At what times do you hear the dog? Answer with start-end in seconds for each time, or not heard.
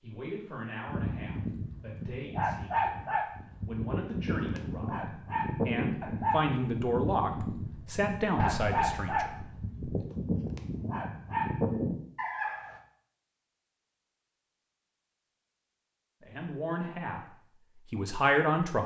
0.8-12.8.